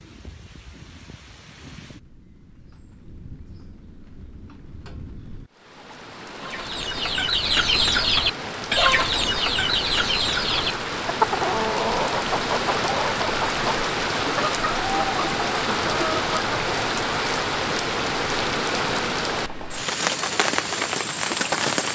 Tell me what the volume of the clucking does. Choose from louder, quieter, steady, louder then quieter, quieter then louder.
quieter.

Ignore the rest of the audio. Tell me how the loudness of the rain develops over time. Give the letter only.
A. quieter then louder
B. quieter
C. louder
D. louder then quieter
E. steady
C.